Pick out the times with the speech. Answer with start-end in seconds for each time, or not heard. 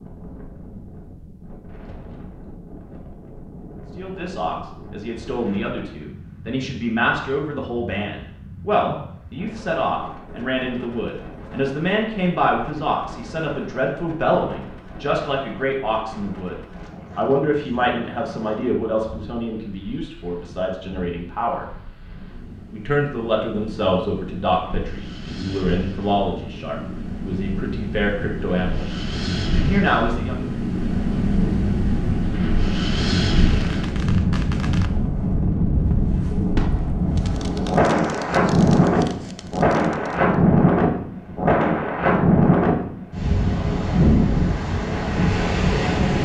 4.0-16.6, 17.1-21.6, 22.7-28.9, 29.6-30.4.